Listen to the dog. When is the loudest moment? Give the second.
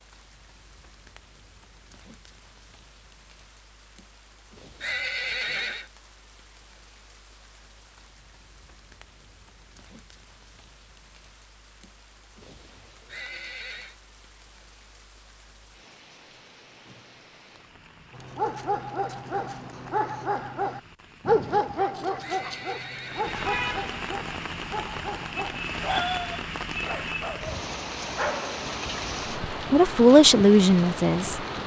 21 s.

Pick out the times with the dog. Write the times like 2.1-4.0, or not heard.
18.1-28.6.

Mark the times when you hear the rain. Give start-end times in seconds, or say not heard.
0.0-31.6.